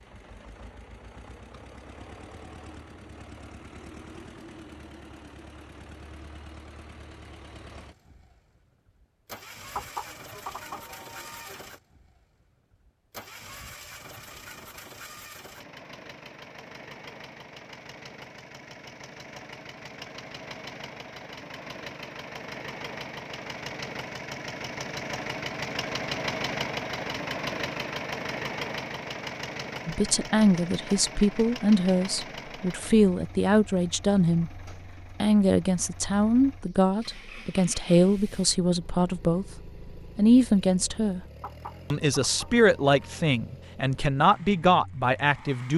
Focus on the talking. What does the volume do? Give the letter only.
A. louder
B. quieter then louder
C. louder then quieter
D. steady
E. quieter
D.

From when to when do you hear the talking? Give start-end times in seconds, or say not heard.
29.9-41.2, 41.9-45.7.